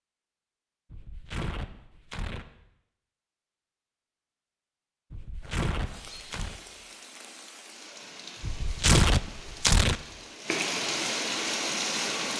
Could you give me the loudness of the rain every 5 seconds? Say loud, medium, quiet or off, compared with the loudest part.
off, quiet, loud.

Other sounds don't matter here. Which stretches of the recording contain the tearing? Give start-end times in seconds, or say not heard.
0.9-2.5, 5.1-6.6, 8.4-9.9.